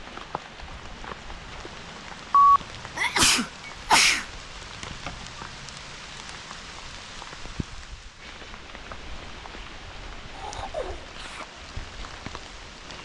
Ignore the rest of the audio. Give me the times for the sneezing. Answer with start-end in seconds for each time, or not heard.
2.3-4.2, 10.3-11.4.